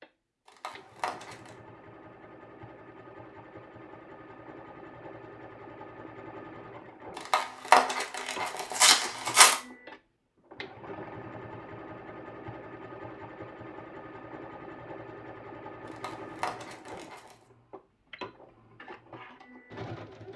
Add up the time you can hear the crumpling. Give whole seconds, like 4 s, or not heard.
5 s.